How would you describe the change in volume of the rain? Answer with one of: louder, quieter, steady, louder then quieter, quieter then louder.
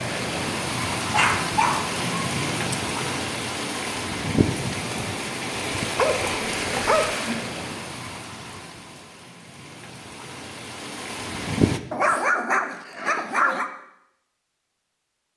quieter.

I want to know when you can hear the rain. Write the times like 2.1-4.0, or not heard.
0.0-11.8.